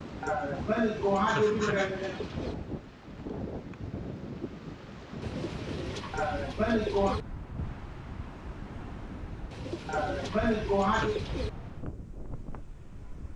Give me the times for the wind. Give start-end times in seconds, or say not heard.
0.0-13.3.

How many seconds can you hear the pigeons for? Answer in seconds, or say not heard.
6 s.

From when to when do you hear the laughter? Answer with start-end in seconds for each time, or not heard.
0.2-2.2, 6.1-7.2, 9.8-11.2.